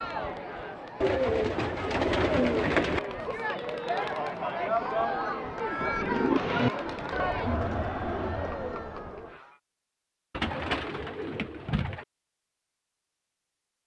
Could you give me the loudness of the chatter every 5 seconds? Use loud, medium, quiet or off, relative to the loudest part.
loud, loud, off.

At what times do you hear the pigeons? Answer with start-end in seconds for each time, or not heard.
1.0-3.0, 5.8-6.7, 10.3-12.1.